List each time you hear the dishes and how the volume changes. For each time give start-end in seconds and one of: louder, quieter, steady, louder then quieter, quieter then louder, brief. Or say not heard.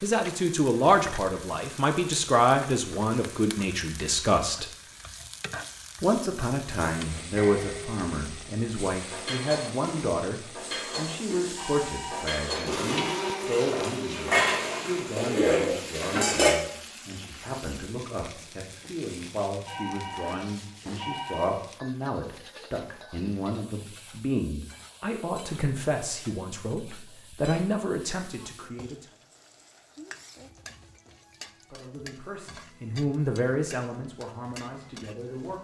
7.0-16.6 louder.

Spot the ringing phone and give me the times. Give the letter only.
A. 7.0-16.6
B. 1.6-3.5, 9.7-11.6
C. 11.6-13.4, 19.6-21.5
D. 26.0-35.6
C.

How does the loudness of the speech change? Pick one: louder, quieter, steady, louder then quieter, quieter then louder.
quieter.